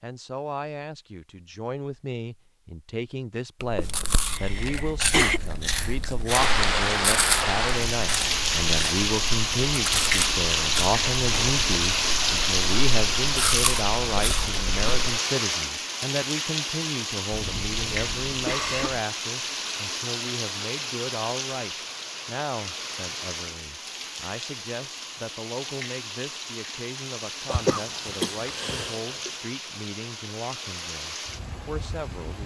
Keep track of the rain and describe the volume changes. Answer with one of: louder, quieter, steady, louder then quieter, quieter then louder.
quieter.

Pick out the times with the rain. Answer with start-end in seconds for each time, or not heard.
6.2-32.4.